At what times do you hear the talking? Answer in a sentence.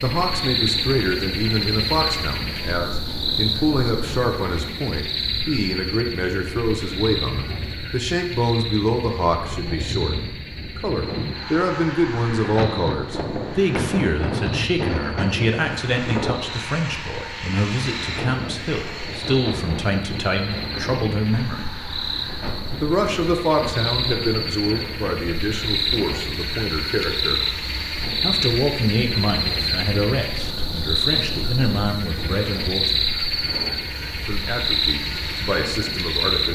You can hear the talking from 0.0 to 10.2 s, from 10.8 to 21.8 s, from 22.8 to 27.4 s, from 28.2 to 33.0 s and from 34.2 to 36.5 s.